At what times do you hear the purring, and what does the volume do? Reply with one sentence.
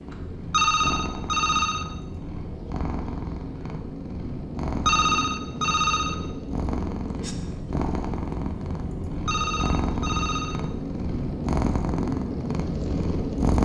You can hear the purring from 0.0 to 13.5 s, getting louder.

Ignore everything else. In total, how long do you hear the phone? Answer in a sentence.
You can hear the phone for 4 seconds altogether.